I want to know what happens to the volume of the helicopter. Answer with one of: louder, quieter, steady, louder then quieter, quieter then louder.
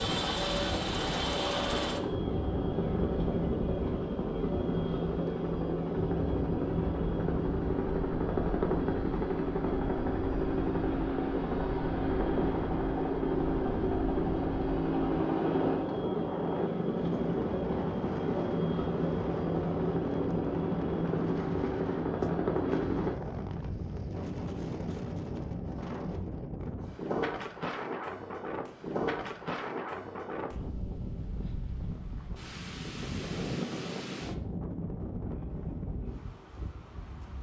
steady.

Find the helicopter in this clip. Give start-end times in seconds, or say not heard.
0.0-23.1.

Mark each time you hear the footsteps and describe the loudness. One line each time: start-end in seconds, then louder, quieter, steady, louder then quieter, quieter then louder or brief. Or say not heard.
not heard.